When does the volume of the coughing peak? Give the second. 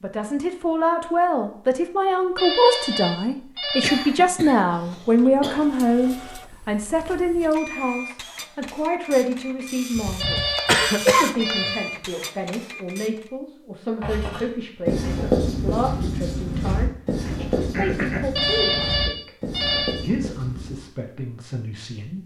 11 s.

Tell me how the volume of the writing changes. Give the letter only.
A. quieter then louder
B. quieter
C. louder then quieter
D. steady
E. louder
B.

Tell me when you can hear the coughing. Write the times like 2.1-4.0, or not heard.
3.8-5.6, 9.9-11.8, 17.2-18.4.